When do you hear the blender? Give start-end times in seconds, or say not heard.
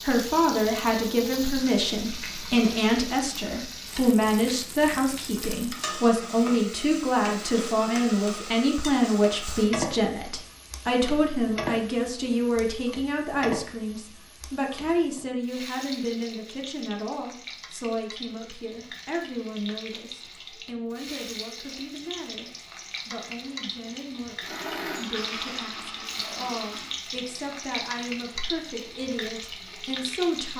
24.4-27.0.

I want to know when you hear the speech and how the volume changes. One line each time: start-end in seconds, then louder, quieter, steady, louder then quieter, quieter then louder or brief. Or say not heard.
0.0-30.5 quieter.